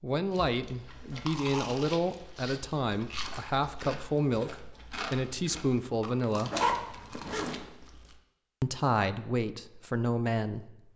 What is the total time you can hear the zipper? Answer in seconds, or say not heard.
2 s.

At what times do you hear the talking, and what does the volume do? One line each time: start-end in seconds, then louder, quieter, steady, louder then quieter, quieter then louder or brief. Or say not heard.
0.0-6.5 steady
8.6-10.7 brief.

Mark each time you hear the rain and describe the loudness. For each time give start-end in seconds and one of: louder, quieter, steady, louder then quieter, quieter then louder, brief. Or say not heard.
not heard.